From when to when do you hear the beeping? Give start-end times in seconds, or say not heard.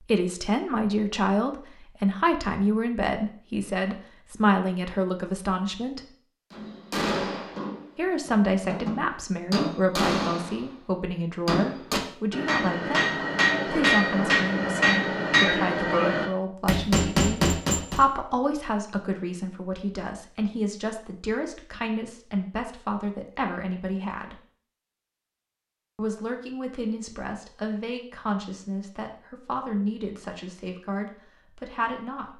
not heard.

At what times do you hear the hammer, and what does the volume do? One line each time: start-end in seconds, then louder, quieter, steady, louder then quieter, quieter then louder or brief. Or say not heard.
6.5-18.0 louder.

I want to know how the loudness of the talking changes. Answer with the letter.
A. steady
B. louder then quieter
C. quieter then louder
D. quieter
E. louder
D.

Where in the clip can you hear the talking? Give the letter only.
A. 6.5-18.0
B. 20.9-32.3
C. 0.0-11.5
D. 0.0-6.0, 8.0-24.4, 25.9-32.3
D.